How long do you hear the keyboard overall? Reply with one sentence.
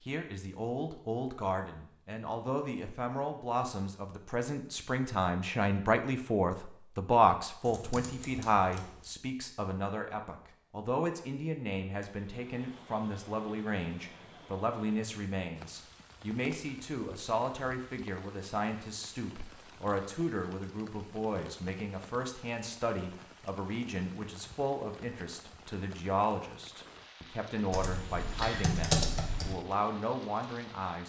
You can hear the keyboard for 3 seconds altogether.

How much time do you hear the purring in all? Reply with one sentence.
The purring can't be heard in this clip.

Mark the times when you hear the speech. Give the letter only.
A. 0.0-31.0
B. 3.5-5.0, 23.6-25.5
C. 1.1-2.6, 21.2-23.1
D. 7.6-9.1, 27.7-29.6
A.